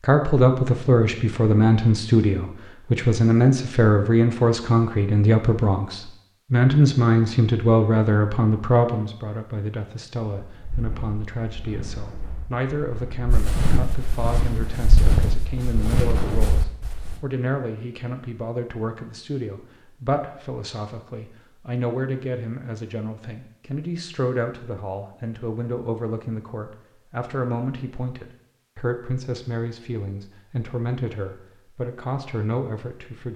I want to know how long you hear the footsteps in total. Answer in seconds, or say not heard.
7 s.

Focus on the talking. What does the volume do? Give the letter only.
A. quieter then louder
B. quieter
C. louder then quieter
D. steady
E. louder
B.